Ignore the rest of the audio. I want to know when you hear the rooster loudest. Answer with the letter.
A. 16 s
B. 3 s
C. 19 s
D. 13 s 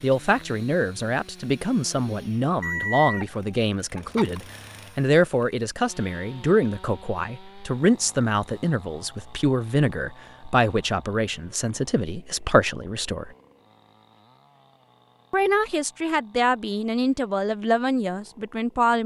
B.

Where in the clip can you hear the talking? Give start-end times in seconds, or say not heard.
0.0-13.3, 15.3-19.0.